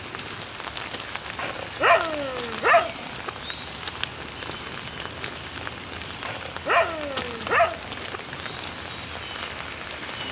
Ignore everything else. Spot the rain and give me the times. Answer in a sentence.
You can hear the rain from 0.0 to 10.2 s.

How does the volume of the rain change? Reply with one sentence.
The loudness of the rain stays about the same.